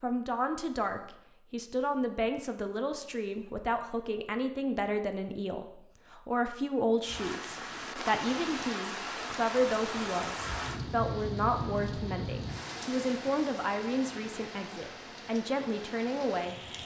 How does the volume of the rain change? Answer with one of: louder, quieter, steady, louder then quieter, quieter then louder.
quieter.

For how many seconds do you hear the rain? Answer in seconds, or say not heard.
10 s.